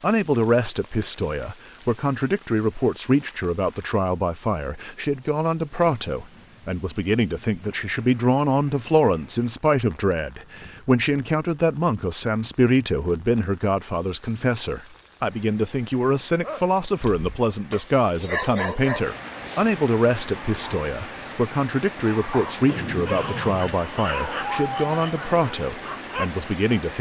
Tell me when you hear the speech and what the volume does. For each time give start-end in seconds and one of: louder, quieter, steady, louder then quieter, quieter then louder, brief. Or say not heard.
0.0-26.9 steady.